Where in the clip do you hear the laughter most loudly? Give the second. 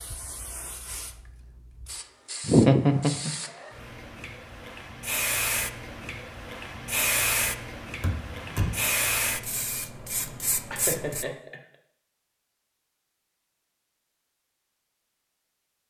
3 s.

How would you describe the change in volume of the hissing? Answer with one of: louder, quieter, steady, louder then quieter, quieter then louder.
louder.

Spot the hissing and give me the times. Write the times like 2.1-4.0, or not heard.
0.0-11.2.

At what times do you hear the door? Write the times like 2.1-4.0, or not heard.
8.0-8.8.